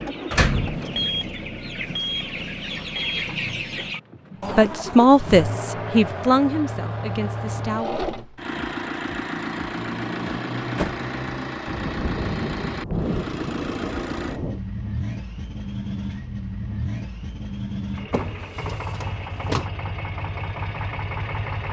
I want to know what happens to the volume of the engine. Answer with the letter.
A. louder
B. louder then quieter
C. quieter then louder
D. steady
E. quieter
D.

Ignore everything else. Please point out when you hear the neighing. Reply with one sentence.
The neighing can't be heard in this clip.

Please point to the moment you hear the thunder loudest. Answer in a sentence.
The volume of the thunder peaks at 13 seconds.